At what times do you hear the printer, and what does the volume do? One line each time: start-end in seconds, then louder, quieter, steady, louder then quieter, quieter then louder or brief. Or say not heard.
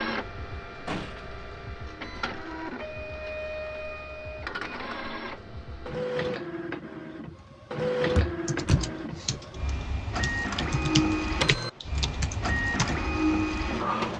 0.0-14.1 louder.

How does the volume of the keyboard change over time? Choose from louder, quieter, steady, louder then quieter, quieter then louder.
louder then quieter.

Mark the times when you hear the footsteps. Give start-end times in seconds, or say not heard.
not heard.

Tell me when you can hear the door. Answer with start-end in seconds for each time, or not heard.
0.8-1.2, 8.2-8.9.